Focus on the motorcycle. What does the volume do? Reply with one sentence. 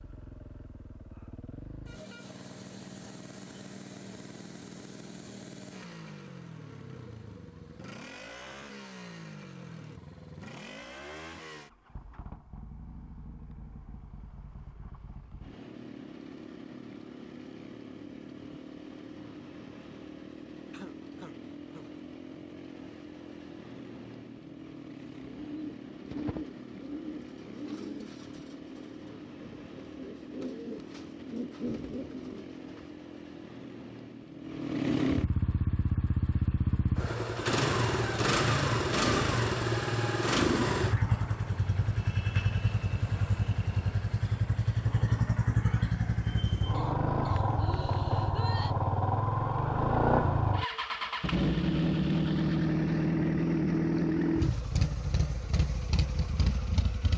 The loudness of the motorcycle goes up.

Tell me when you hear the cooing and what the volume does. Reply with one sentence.
You can hear the cooing from 25.1 to 33.0 s, getting quieter then louder.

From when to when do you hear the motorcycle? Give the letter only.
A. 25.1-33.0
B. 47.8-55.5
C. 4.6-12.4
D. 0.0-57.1
D.